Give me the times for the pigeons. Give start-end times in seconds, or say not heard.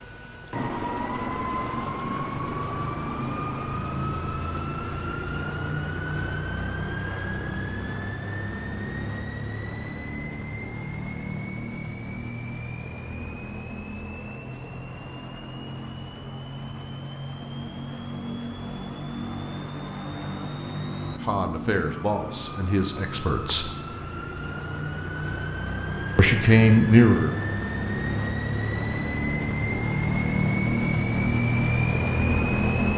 not heard.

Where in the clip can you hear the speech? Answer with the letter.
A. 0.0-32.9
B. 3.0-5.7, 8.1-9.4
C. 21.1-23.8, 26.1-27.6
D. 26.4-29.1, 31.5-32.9
C.